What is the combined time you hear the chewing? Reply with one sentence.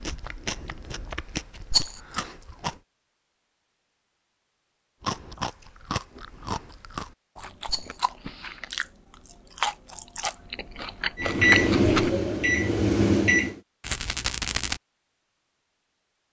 The chewing can be heard for 10 seconds in total.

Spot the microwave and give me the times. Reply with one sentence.
You can hear the microwave from 11.2 to 13.6 s.